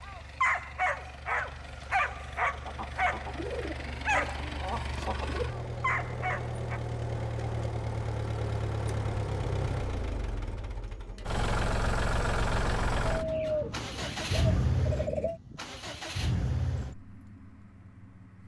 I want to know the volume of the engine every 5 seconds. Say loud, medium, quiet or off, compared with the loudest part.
medium, loud, loud, medium.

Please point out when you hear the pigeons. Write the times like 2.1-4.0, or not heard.
2.6-5.5, 13.1-15.4.